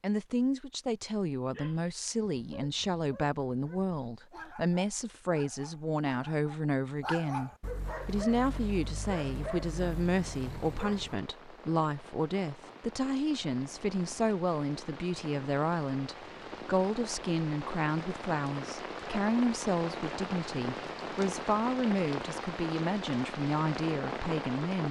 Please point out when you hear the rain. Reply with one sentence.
You can hear the rain from 7.8 to 24.8 s.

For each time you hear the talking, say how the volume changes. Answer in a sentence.
The talking can be heard from 0.0 to 24.8 s, at a steady volume.